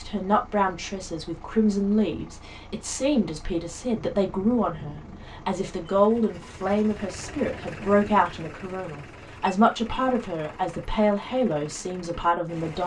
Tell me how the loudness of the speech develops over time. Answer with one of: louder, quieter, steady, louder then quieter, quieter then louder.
steady.